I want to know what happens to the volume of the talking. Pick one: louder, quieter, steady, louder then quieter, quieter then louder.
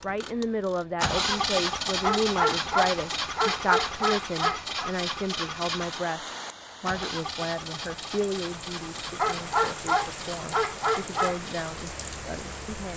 quieter.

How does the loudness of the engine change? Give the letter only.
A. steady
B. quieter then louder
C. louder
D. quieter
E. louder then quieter
D.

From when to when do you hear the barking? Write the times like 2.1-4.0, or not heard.
2.0-4.9, 9.2-11.4.